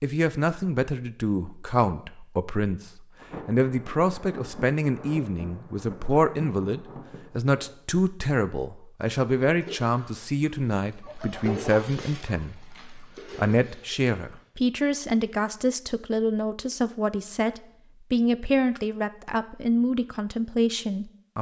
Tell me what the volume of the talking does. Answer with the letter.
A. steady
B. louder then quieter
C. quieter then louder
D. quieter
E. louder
A.